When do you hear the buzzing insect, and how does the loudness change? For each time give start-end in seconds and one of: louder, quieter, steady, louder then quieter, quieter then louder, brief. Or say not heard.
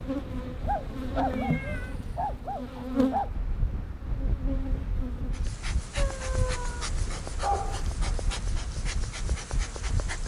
0.0-10.2 quieter.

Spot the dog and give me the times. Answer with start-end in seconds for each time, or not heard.
0.6-3.3, 6.0-7.9.